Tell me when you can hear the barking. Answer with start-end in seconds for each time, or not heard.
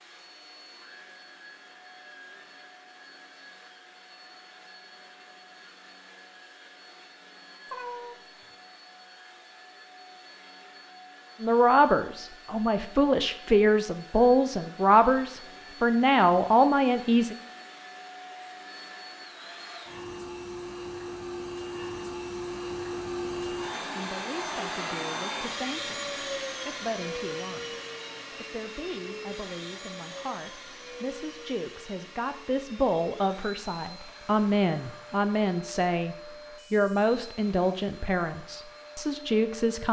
not heard.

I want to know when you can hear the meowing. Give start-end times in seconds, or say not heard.
7.7-8.4.